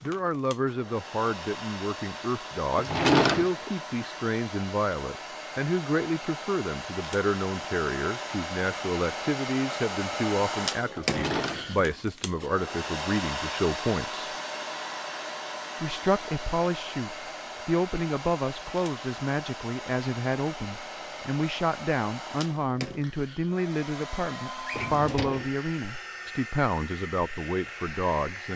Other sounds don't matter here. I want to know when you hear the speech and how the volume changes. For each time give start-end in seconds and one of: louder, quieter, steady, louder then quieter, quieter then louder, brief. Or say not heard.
0.0-14.3 steady
15.8-28.5 steady.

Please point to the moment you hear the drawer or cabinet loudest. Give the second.
3 s.